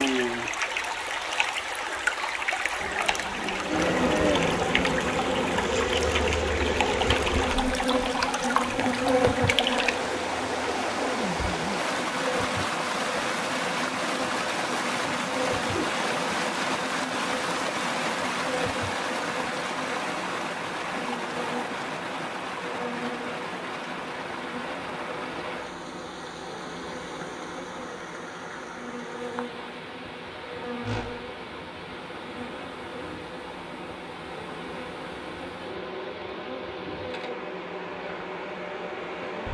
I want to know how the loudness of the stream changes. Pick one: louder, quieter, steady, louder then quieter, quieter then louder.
quieter.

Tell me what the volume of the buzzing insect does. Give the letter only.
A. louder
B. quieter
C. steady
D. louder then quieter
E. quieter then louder
B.